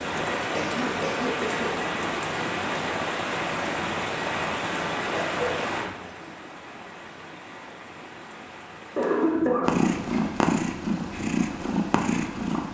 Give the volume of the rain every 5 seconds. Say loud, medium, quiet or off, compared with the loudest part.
loud, medium, off.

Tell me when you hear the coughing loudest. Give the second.
9 s.